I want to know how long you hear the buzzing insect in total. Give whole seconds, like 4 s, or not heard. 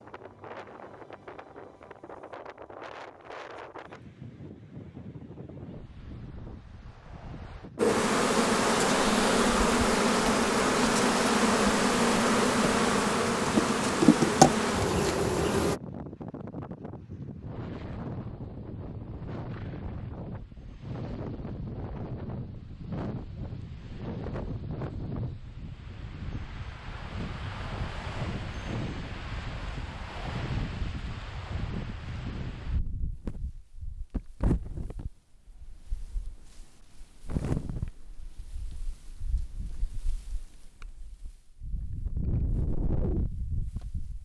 8 s.